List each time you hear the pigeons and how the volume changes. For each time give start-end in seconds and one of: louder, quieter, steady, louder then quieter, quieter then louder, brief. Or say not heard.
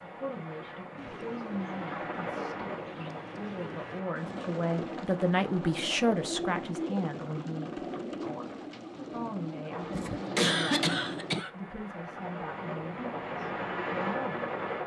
0.9-11.4 louder.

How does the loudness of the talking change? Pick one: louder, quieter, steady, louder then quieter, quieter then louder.
louder then quieter.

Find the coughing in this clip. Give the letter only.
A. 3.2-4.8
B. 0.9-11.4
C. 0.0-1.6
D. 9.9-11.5
D.